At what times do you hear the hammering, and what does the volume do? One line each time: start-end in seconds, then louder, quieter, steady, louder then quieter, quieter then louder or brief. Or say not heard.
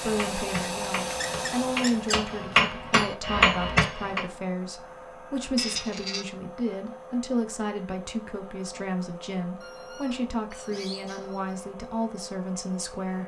0.0-4.2 louder.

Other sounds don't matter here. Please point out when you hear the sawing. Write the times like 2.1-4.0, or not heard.
not heard.